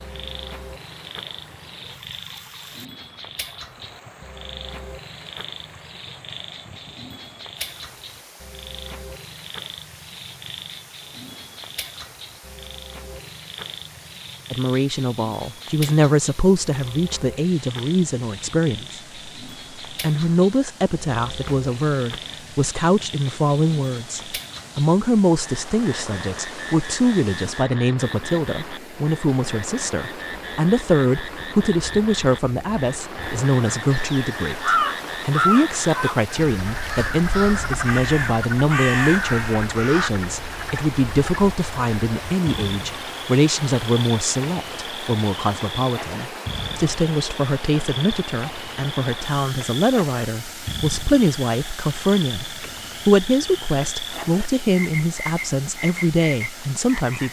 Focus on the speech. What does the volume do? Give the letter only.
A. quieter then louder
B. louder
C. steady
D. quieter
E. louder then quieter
C.